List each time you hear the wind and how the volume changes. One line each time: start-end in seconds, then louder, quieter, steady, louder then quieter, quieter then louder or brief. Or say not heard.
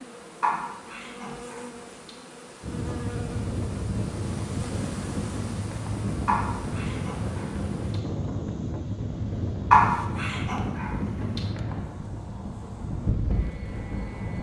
2.6-14.3 steady.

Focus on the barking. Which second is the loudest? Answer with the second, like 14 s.
10 s.